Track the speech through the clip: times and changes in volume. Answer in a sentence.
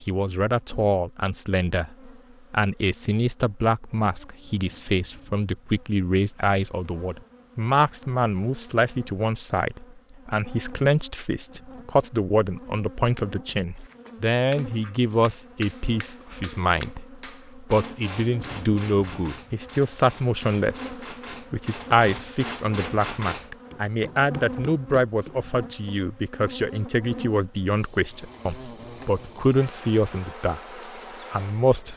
You can hear the speech from 0.0 to 30.6 s, at a steady volume; and briefly from 31.3 to 31.9 s.